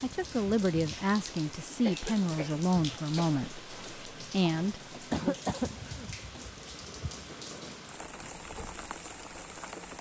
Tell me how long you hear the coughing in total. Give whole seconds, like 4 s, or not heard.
3 s.